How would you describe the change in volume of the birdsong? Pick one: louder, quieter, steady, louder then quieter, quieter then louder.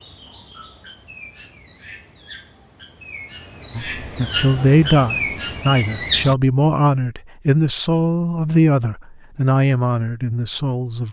louder.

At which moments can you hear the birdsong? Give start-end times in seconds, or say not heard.
0.0-6.3.